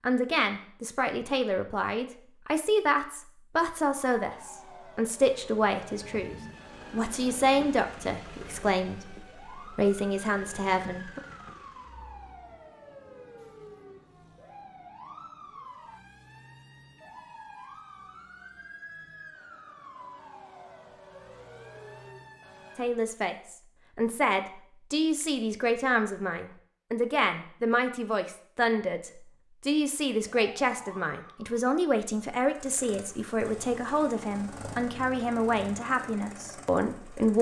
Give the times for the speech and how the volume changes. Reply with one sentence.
The speech can be heard from 0.0 to 11.2 s, at a steady volume; and from 22.8 to 37.3 s, at a steady volume.